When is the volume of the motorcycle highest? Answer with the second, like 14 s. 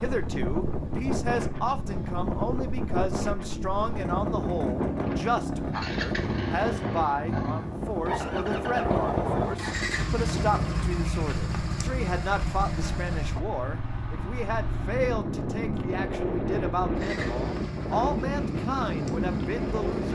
9 s.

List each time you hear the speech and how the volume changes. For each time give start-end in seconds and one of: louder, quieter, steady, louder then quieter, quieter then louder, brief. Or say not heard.
0.0-20.1 steady.